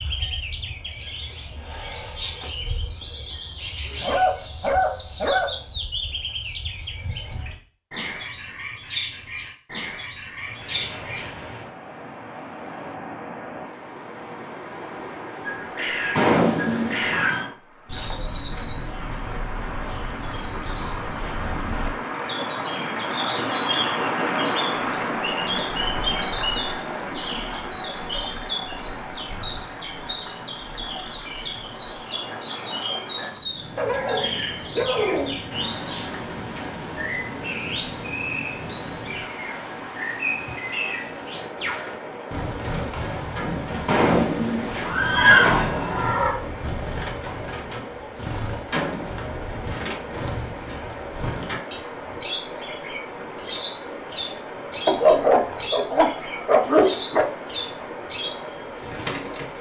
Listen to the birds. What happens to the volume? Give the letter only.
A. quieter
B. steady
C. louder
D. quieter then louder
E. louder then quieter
B.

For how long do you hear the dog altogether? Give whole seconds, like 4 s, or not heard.
6 s.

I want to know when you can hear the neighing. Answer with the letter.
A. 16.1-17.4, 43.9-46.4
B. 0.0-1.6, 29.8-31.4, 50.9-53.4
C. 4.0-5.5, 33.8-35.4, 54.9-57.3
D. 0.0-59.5
A.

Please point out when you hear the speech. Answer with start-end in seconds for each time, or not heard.
not heard.